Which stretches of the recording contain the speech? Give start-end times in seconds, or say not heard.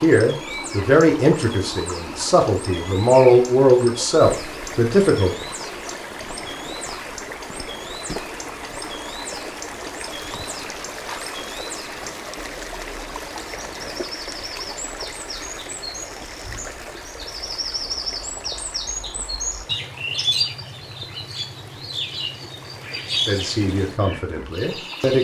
0.0-5.3, 23.2-25.1.